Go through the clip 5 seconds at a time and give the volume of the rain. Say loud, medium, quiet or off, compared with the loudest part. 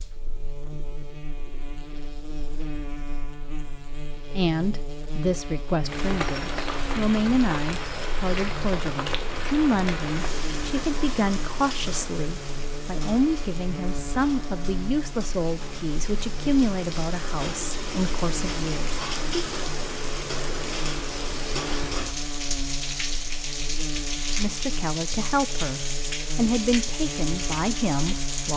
off, loud, medium, loud, loud, loud.